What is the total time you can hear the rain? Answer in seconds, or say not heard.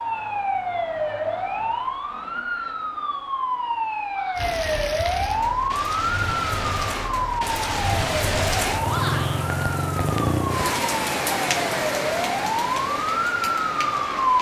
10 s.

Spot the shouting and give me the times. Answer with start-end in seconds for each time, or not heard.
4.0-4.5, 8.8-9.4.